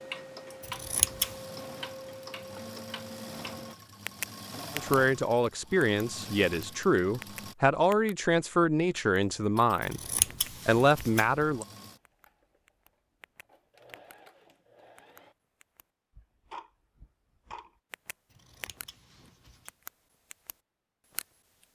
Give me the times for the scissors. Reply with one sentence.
The scissors can be heard from 0.6 to 1.4 s, from 9.8 to 11.7 s and from 18.3 to 19.7 s.